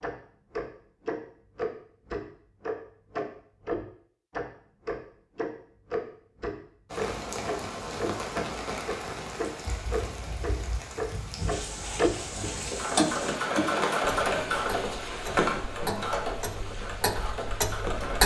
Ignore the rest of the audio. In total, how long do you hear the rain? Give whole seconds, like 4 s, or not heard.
11 s.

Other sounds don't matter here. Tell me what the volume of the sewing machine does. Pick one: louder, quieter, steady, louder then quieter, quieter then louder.
quieter.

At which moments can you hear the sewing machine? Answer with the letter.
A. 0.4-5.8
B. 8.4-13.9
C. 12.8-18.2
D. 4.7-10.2
C.